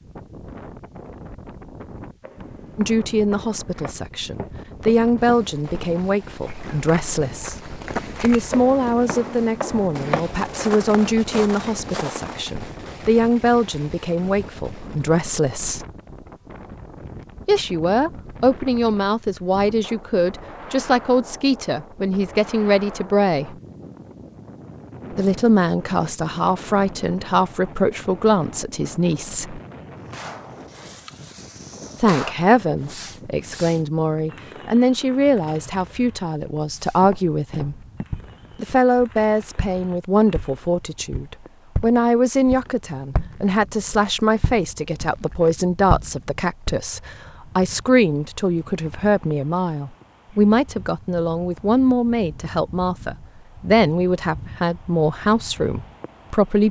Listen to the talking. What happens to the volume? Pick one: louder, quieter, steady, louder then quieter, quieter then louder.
steady.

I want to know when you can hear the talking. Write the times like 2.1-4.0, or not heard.
2.8-7.5, 8.2-15.8, 17.4-23.6, 25.1-29.6, 32.0-37.8, 38.5-56.6.